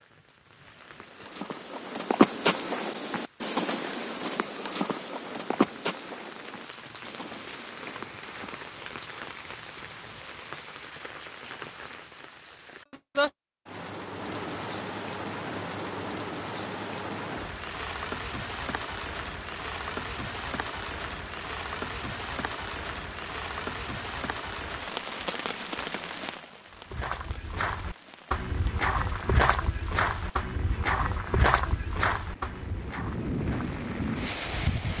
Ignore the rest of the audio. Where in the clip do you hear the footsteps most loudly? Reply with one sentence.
The volume of the footsteps peaks at 2 seconds.